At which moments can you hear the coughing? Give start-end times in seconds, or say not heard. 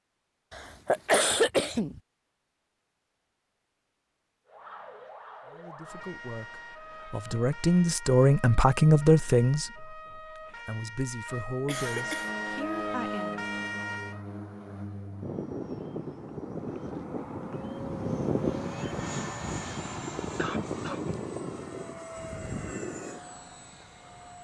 0.5-2.0, 11.7-12.3, 20.4-21.2.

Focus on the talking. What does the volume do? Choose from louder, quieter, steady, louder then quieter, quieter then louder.
louder then quieter.